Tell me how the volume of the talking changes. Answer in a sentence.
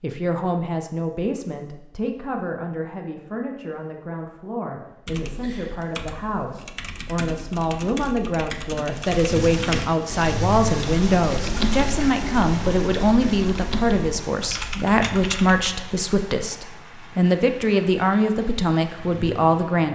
The loudness of the talking goes up.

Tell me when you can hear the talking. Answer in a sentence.
You can hear the talking from 0.0 to 19.9 s.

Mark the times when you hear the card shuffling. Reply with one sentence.
You can't hear the card shuffling here.